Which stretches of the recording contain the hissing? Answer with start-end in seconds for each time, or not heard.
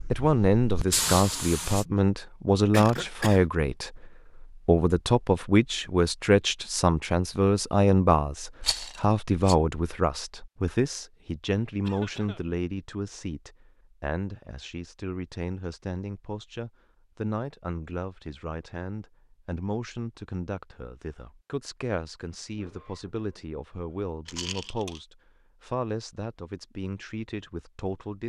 0.0-1.9.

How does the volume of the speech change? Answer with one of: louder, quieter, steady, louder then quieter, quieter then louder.
quieter.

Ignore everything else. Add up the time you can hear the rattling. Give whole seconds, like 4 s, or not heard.
2 s.